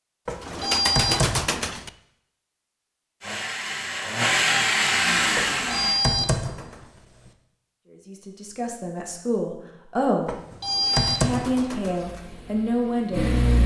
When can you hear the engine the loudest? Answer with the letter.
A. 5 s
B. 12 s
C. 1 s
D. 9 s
A.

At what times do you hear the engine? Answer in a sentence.
The engine can be heard from 3.2 to 6.0 s and from 10.8 to 13.6 s.